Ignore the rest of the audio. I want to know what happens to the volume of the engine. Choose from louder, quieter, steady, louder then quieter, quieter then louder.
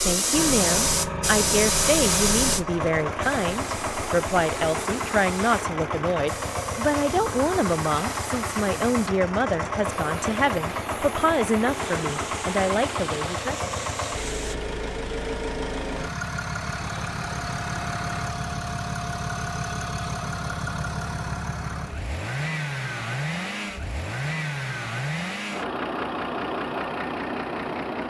steady.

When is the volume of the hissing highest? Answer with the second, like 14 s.
2 s.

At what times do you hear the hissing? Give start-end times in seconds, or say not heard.
0.0-14.6.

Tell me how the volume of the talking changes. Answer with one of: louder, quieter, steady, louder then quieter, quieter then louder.
steady.